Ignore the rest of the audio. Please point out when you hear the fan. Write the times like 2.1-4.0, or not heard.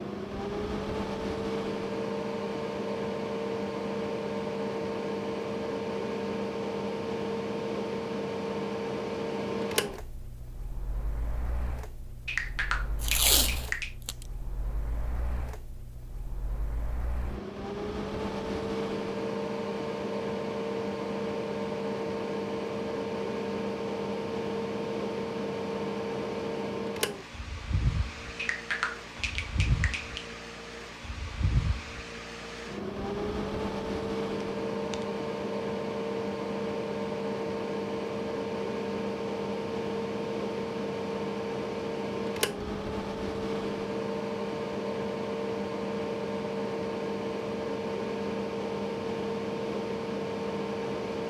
0.0-51.2.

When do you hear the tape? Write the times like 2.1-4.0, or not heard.
13.0-14.2.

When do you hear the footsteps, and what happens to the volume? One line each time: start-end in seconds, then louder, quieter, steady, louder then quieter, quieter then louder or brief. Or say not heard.
not heard.